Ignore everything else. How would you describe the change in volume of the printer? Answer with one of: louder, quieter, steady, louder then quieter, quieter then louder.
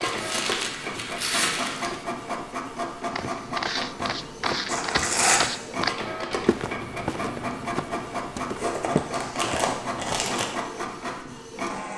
steady.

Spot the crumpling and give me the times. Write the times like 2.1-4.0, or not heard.
0.1-1.9, 4.7-5.5, 8.6-10.4.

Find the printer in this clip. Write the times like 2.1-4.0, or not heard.
0.0-11.9.